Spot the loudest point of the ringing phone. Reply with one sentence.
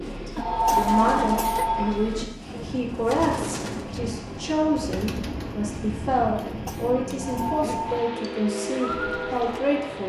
The volume of the ringing phone peaks at 1 second.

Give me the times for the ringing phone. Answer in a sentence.
The ringing phone can be heard from 0.3 to 1.9 s and from 7.2 to 8.1 s.